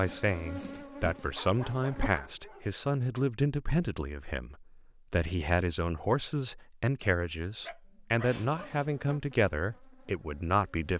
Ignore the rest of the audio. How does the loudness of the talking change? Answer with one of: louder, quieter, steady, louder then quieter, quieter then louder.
steady.